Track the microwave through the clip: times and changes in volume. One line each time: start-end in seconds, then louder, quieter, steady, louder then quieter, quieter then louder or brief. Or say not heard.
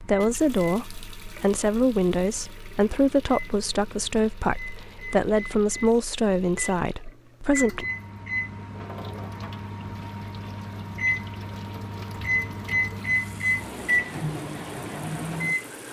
0.0-15.8 louder.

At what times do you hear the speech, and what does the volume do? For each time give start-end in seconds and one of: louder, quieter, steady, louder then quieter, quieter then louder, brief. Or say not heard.
0.0-7.8 steady.